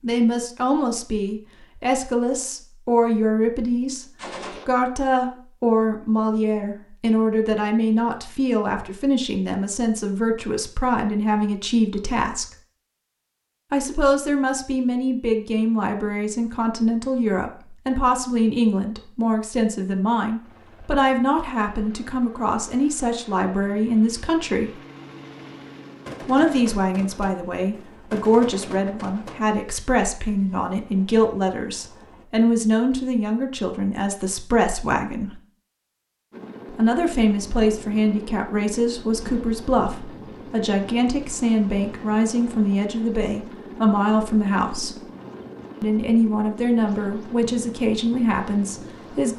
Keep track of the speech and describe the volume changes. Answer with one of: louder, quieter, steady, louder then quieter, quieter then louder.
steady.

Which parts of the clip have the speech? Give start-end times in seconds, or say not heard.
0.0-12.5, 13.7-24.7, 26.2-35.4, 36.7-45.0, 45.8-49.3.